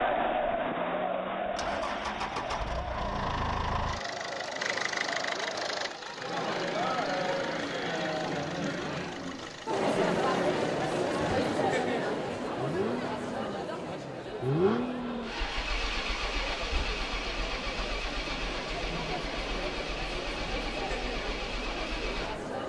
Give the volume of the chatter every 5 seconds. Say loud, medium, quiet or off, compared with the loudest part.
loud, loud, loud, medium, medium.